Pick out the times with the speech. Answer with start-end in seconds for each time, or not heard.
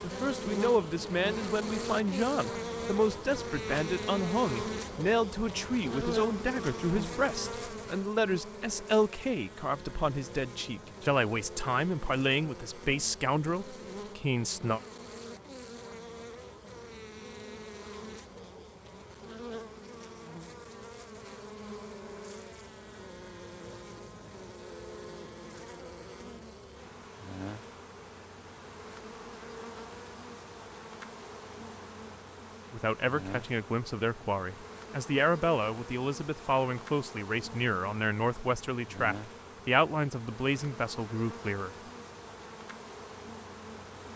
0.0-14.8, 32.7-41.8.